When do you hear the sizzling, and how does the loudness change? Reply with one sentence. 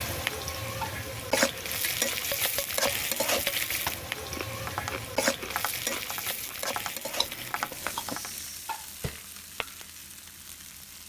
The sizzling can be heard from 0.0 to 11.0 s, getting quieter.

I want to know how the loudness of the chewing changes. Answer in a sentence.
The volume of the chewing goes down, then up.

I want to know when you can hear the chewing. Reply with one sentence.
You can hear the chewing from 3.5 to 8.2 s.